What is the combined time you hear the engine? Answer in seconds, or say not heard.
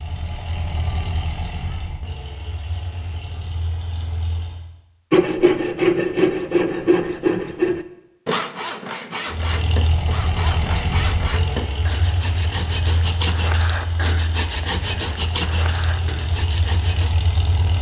13 s.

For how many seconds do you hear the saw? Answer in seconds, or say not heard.
12 s.